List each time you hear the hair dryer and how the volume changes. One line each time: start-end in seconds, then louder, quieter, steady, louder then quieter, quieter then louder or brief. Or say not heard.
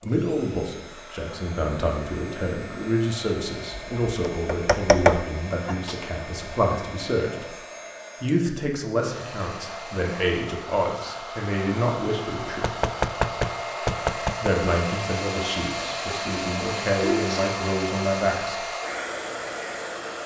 0.0-20.2 louder.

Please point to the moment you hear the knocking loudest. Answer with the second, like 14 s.
5 s.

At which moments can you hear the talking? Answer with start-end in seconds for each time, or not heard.
0.0-7.6, 8.2-12.8, 14.4-18.7.